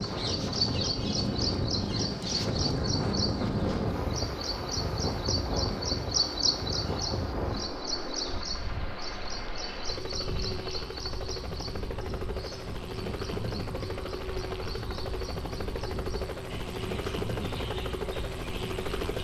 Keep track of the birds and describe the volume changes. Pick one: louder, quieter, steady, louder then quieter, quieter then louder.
quieter.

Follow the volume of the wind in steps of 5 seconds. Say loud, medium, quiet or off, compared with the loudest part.
loud, medium, medium, medium.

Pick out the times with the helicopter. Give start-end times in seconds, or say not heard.
0.0-19.2.